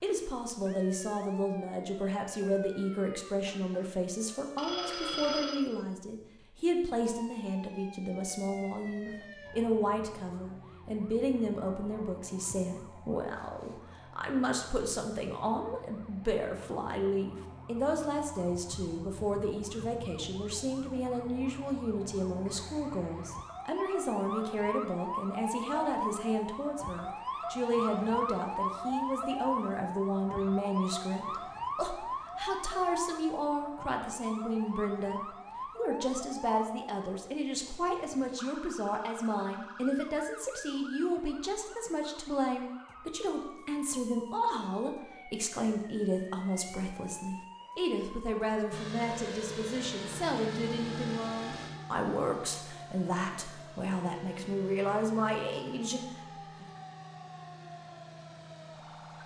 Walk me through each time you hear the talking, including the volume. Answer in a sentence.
You can hear the talking from 0.0 to 56.6 s, at a steady volume.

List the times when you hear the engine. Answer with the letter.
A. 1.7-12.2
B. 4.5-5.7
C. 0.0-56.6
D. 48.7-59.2
D.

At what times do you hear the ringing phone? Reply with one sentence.
The ringing phone can be heard from 4.5 to 5.7 s.